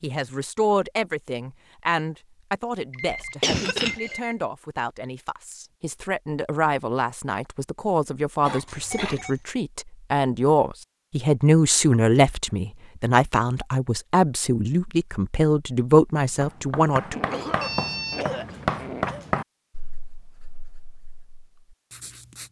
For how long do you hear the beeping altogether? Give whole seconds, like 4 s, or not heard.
3 s.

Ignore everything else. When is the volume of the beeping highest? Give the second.
18 s.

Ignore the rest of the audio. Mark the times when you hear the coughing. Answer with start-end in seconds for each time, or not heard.
3.2-4.2, 8.4-9.2, 17.1-19.2.